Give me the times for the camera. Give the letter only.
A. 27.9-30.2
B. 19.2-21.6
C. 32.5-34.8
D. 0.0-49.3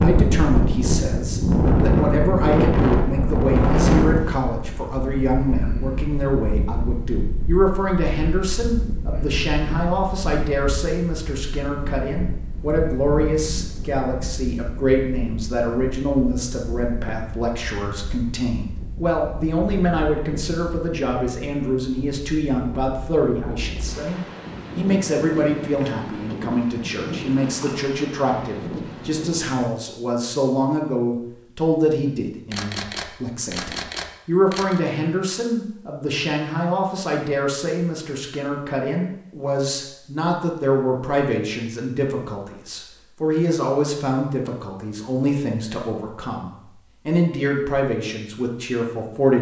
C.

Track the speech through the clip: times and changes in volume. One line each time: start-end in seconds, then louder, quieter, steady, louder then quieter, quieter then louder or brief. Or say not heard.
0.0-49.3 steady.